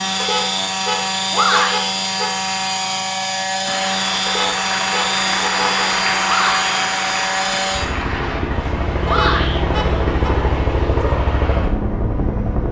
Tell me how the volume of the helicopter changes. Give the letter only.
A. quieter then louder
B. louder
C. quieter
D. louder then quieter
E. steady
E.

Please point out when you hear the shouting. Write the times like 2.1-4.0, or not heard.
1.3-1.9, 6.2-6.7, 9.1-9.7.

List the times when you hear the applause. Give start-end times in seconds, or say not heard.
3.6-8.4.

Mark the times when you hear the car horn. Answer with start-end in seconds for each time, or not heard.
0.2-2.3, 4.2-5.8, 9.1-10.3.